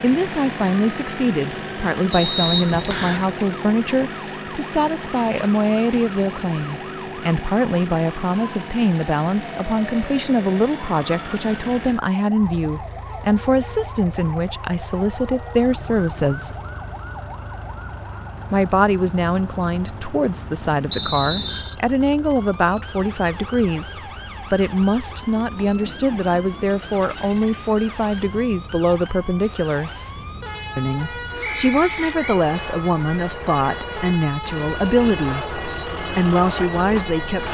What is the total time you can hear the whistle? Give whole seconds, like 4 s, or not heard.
3 s.